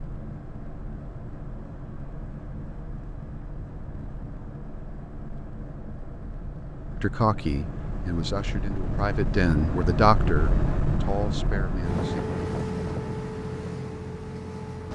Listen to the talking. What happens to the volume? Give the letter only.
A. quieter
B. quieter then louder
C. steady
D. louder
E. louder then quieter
E.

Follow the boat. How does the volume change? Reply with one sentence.
The loudness of the boat goes up.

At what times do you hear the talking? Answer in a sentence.
You can hear the talking from 7.0 to 12.2 s.